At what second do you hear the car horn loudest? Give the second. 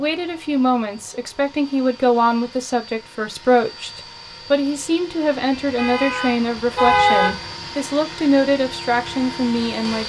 7 s.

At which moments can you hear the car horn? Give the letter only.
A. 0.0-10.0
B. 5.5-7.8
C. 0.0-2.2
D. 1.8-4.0
B.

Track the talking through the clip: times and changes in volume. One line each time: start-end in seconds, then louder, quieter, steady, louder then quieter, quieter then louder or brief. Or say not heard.
0.0-10.0 steady.